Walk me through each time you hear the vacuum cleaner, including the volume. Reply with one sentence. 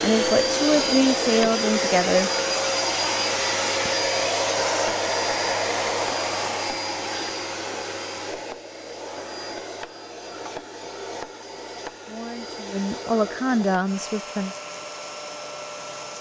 The vacuum cleaner can be heard from 0.0 to 16.1 s, getting quieter.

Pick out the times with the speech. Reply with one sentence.
The speech can be heard from 0.0 to 2.3 s and from 12.1 to 14.6 s.